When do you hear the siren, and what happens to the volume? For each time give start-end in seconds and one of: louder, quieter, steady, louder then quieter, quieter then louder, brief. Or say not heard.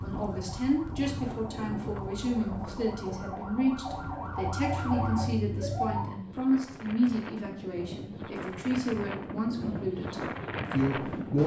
0.0-6.2 louder.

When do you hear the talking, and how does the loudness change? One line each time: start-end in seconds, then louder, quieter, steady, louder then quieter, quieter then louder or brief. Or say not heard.
0.0-11.4 steady.